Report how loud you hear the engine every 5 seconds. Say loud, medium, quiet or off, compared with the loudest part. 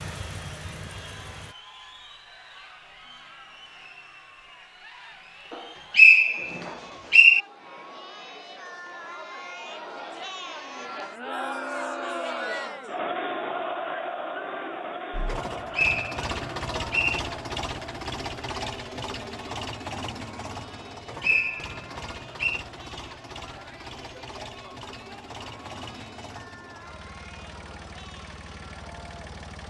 medium, off, off, loud, medium, medium.